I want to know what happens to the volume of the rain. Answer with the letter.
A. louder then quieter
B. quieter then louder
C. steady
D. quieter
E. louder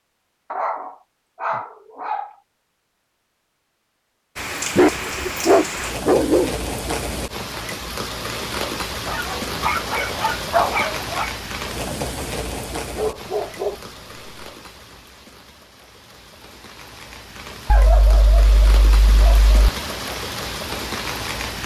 B.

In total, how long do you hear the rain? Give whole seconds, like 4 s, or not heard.
17 s.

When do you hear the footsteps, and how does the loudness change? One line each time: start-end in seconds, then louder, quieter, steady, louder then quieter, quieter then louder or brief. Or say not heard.
not heard.